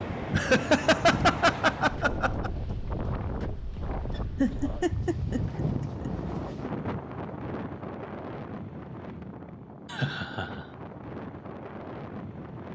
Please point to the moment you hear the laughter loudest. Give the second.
1 s.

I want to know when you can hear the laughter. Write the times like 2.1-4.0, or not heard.
0.3-2.5, 4.4-6.1, 9.8-10.7.